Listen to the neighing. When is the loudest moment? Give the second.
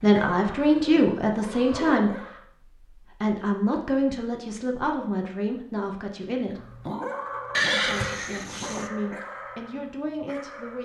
8 s.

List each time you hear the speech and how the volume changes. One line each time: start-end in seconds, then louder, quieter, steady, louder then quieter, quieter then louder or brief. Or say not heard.
0.0-6.8 quieter
7.7-10.7 brief.